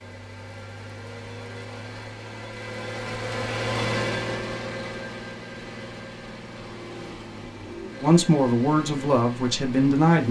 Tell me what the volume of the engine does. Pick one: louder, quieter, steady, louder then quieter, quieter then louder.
louder then quieter.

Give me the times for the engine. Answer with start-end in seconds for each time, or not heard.
0.0-10.2.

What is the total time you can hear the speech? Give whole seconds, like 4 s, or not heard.
2 s.